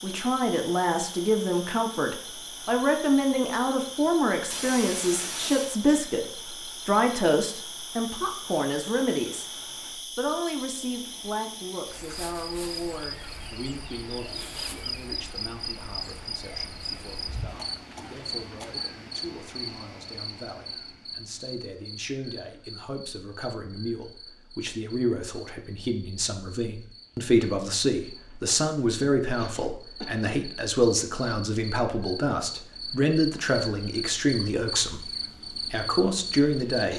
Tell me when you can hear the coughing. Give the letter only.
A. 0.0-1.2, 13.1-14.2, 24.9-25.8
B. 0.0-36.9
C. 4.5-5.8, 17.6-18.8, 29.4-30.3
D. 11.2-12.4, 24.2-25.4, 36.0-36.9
C.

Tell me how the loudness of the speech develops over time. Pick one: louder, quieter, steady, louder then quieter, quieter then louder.
quieter then louder.